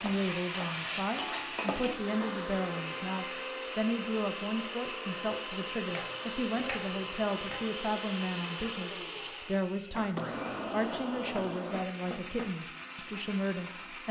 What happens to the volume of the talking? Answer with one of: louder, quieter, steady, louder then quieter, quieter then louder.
steady.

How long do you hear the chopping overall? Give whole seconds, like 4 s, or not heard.
6 s.